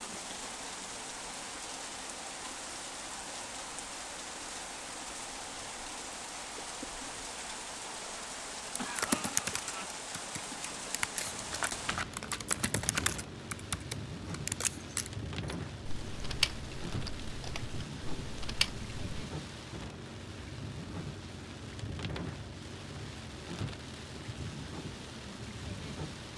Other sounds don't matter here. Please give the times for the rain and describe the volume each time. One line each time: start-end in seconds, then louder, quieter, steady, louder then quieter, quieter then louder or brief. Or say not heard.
0.0-26.3 steady.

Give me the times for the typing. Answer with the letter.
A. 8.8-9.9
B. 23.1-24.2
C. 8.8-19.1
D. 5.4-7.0
C.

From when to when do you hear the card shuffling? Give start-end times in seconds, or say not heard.
11.2-12.9.